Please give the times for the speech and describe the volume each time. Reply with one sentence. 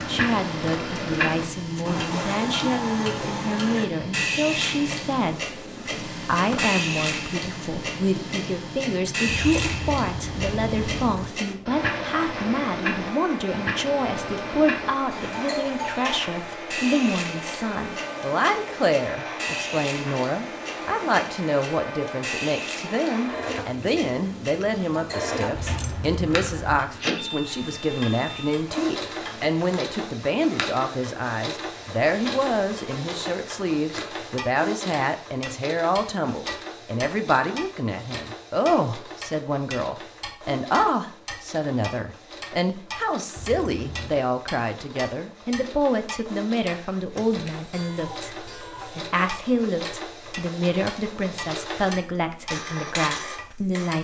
You can hear the speech from 0.1 to 53.9 s, at a steady volume.